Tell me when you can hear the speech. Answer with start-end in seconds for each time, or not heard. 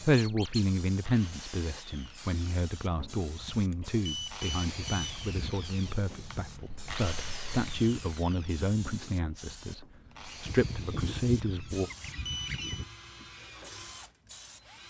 0.0-11.9.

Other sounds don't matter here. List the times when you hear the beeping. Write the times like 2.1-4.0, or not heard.
3.7-5.2, 11.9-12.8.